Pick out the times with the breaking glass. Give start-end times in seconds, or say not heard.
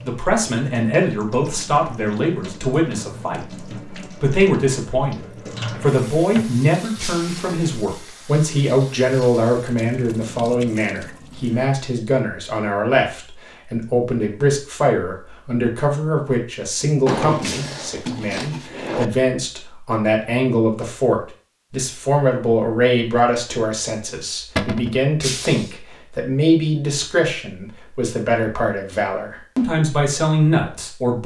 7.0-7.5, 17.4-17.9, 25.2-25.7.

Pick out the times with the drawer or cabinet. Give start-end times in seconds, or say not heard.
5.7-7.8, 17.1-19.1, 24.6-25.0.